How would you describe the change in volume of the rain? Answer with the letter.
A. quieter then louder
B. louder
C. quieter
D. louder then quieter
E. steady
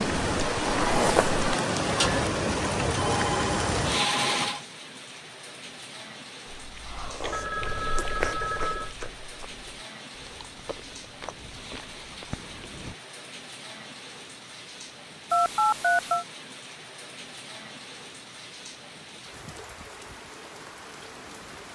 C.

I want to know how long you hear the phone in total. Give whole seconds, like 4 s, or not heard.
4 s.